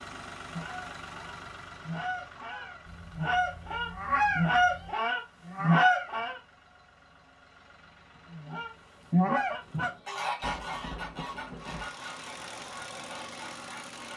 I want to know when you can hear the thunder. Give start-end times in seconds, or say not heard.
10.4-11.9.